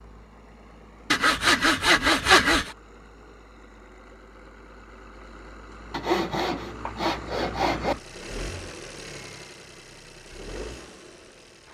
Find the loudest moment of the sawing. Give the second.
2 s.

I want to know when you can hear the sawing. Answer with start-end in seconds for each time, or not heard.
1.1-2.7, 5.9-8.0.